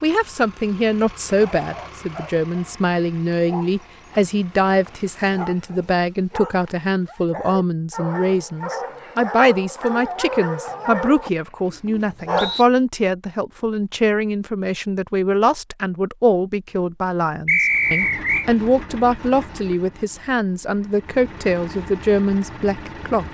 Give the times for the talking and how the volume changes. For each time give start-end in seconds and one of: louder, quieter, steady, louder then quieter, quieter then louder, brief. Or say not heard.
0.0-23.2 steady.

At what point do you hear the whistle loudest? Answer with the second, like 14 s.
18 s.